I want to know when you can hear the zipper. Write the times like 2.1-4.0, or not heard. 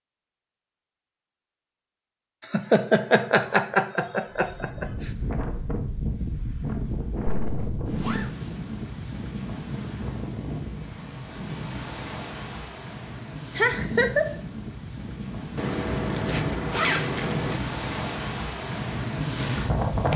7.5-8.3, 15.6-17.6.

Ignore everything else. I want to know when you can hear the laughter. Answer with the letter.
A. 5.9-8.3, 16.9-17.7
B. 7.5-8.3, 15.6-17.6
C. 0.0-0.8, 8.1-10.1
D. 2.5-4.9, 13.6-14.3
D.